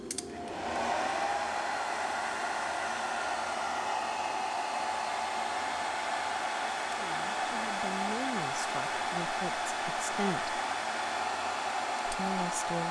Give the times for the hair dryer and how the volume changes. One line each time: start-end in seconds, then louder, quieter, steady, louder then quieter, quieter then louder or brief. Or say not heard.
0.0-12.8 steady.